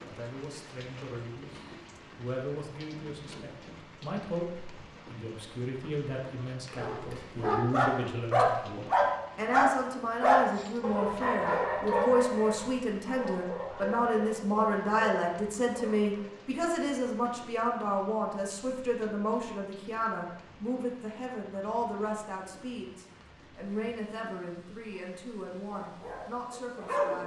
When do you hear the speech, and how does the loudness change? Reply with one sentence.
You can hear the speech from 0.0 to 27.2 s, getting louder then quieter.